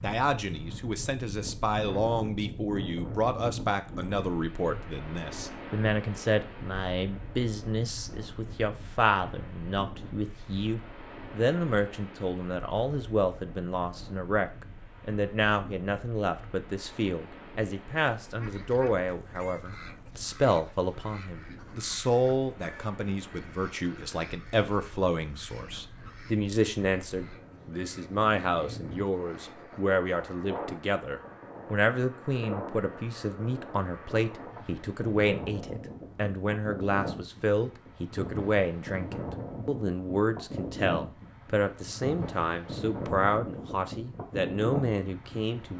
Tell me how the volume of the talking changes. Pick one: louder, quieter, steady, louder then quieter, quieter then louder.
steady.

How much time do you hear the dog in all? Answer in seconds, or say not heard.
not heard.